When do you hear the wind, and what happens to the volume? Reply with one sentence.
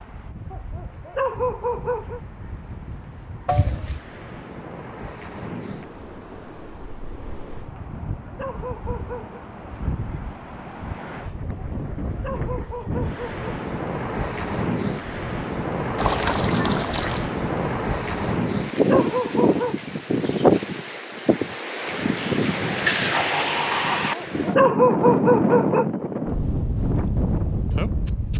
The wind can be heard from 0.0 to 28.3 s, getting louder.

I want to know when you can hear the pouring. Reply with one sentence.
You can hear the pouring from 3.5 to 4.0 s, from 15.9 to 17.3 s and from 22.6 to 24.1 s.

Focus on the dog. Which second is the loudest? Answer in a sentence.
The volume of the dog peaks at 25 seconds.